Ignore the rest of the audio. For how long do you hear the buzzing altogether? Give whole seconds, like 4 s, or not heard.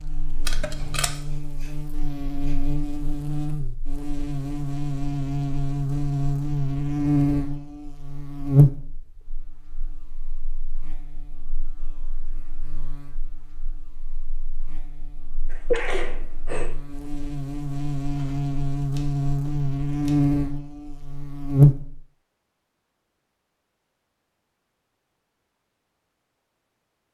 22 s.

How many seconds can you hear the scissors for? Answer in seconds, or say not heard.
3 s.